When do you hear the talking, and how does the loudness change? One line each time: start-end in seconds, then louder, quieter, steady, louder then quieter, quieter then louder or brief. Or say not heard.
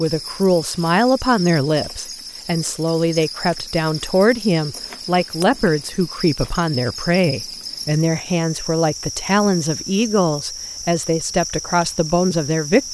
0.0-12.9 steady.